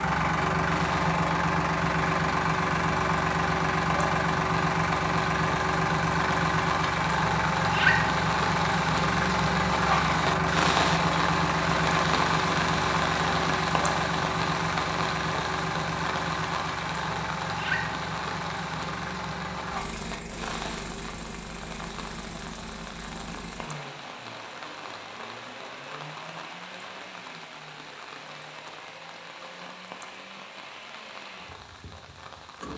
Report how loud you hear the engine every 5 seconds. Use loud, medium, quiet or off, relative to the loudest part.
loud, loud, loud, medium, quiet, quiet, quiet.